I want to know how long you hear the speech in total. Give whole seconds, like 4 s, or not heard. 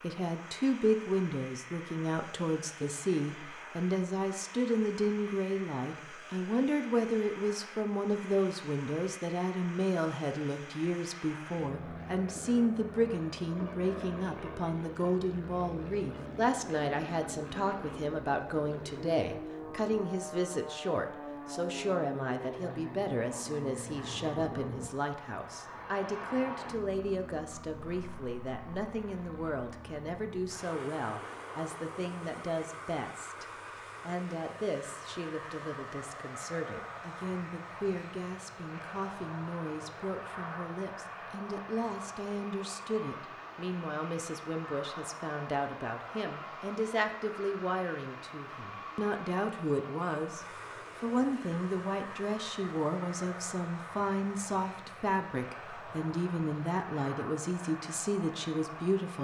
59 s.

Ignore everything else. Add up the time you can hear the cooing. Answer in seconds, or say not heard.
not heard.